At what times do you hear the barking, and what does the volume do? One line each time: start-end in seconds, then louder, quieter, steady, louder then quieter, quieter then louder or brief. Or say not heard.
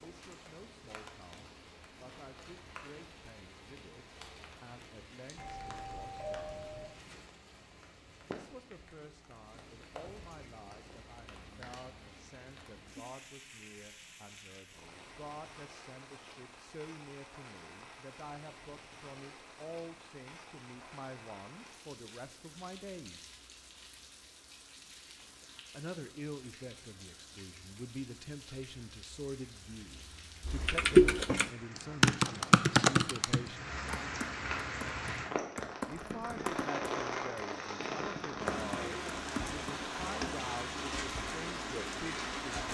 not heard.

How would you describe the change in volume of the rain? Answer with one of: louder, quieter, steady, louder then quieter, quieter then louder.
louder.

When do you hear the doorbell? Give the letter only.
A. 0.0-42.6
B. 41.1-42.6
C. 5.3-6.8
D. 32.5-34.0
C.